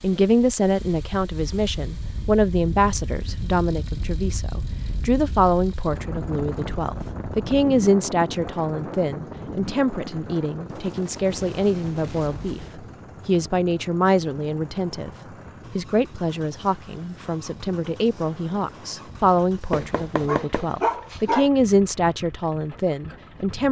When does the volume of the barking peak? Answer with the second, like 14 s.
21 s.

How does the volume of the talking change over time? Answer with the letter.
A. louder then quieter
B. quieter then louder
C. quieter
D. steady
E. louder
D.